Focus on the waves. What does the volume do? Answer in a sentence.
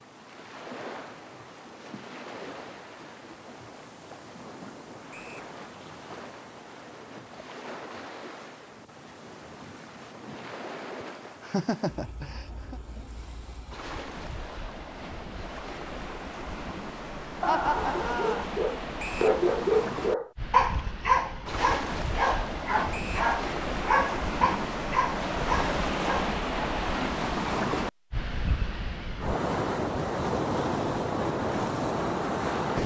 The loudness of the waves goes up.